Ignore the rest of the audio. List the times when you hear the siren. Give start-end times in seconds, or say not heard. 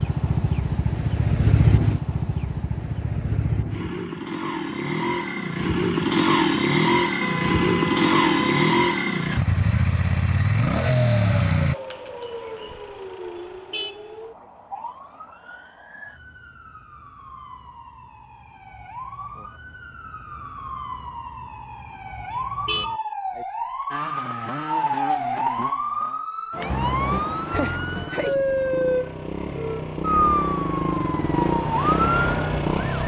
10.7-33.0.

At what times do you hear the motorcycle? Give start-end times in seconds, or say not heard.
0.0-11.8, 23.9-33.0.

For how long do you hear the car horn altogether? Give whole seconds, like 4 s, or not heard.
3 s.